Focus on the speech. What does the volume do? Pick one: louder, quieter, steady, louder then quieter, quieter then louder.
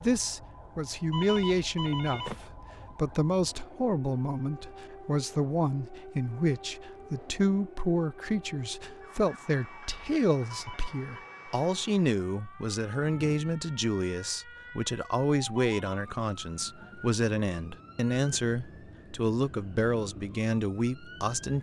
steady.